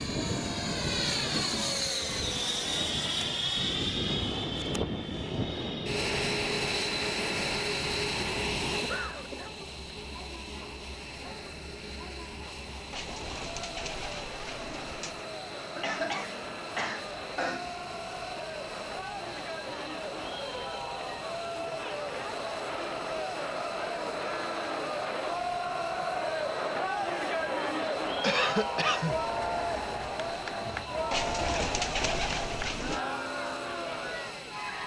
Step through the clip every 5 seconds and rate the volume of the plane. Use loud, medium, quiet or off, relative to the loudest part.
loud, loud, quiet, quiet, quiet, quiet, quiet.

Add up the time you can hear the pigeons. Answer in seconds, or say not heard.
4 s.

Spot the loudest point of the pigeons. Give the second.
32 s.